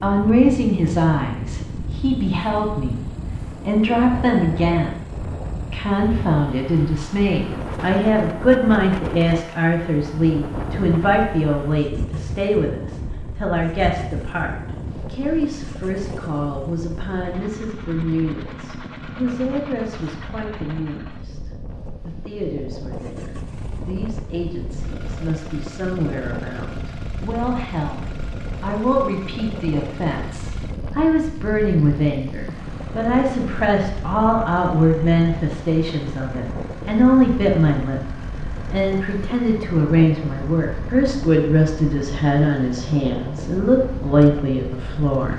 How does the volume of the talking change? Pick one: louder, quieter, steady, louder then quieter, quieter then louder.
quieter then louder.